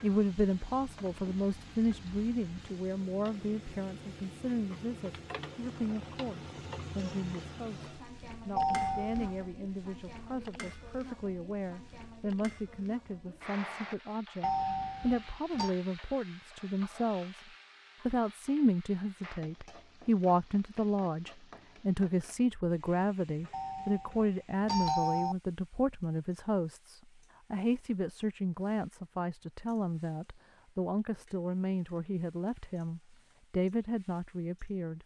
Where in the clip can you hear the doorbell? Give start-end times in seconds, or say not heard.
8.6-9.4, 14.4-15.7, 23.5-25.4.